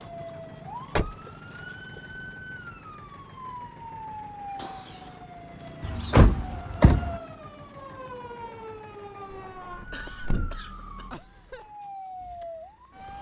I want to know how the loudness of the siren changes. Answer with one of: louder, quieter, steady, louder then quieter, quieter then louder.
steady.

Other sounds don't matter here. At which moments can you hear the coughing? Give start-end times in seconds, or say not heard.
0.8-2.2, 4.5-5.2, 9.9-11.1.